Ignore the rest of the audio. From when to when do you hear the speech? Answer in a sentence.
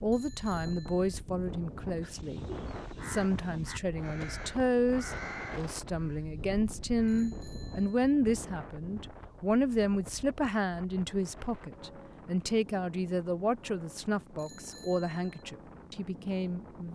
You can hear the speech from 0.0 to 2.4 s and from 3.0 to 16.9 s.